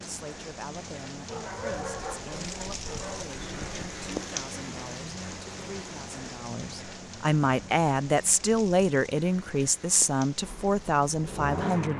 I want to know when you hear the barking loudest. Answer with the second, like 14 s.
2 s.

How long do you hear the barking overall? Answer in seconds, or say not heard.
2 s.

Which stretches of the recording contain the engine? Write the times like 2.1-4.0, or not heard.
10.4-11.9.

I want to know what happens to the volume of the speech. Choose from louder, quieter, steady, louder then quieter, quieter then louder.
louder.